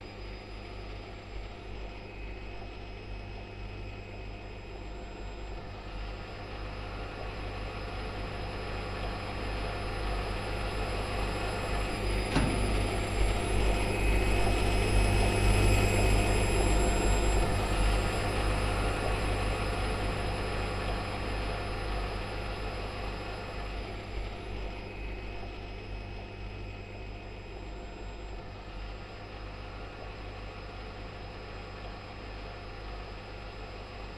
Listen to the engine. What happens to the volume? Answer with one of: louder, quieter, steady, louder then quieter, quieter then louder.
louder then quieter.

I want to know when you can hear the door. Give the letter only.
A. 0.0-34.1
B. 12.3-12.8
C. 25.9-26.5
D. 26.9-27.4
B.